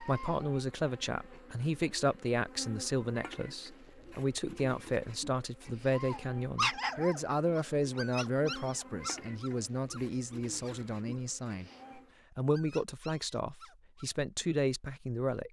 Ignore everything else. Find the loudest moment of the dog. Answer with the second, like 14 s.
7 s.